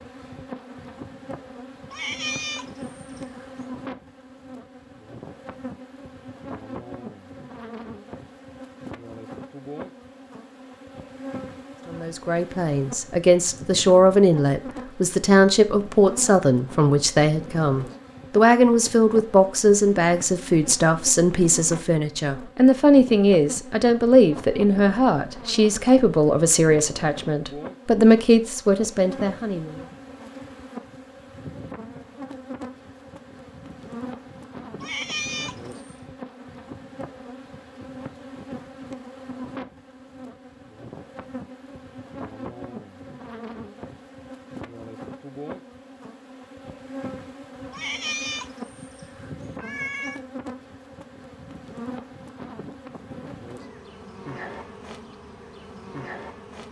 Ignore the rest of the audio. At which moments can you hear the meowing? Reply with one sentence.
The meowing can be heard from 1.9 to 3.6 s, from 34.8 to 36.0 s and from 47.7 to 50.2 s.